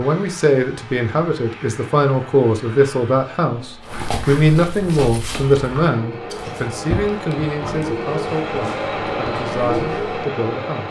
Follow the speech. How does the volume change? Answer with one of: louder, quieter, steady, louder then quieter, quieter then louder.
quieter.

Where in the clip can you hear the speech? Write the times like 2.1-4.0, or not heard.
0.0-10.8.